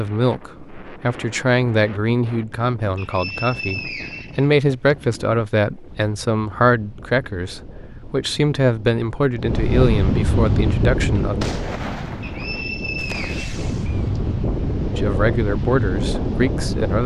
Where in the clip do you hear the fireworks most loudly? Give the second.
12 s.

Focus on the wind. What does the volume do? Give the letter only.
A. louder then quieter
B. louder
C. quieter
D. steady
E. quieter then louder
B.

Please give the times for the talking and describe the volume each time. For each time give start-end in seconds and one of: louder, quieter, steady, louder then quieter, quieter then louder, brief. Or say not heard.
0.0-11.5 steady
14.8-17.0 brief.